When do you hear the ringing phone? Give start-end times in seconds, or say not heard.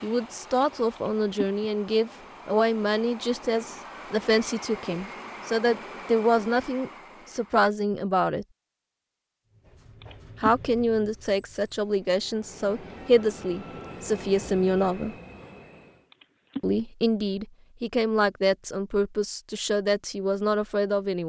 0.9-1.6, 10.0-10.7, 16.1-16.8.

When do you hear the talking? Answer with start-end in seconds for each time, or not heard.
0.0-8.4, 10.4-15.2, 16.6-21.2.